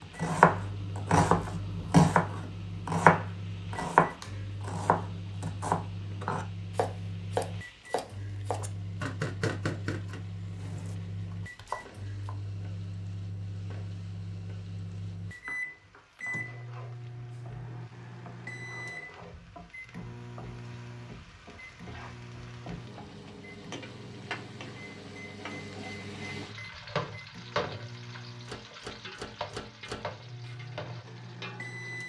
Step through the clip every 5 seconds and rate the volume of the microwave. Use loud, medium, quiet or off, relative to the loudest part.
loud, loud, loud, loud, medium, loud, loud.